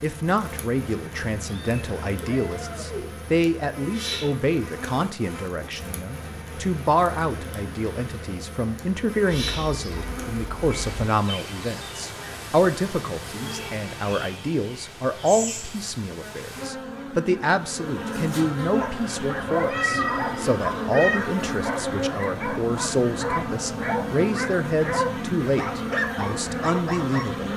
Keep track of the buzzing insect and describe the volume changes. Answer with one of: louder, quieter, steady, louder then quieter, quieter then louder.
louder.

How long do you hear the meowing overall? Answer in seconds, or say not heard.
5 s.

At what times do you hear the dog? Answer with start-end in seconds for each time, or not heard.
18.8-27.2.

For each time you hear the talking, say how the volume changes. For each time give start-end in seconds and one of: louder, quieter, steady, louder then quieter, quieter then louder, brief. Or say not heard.
0.0-27.5 steady.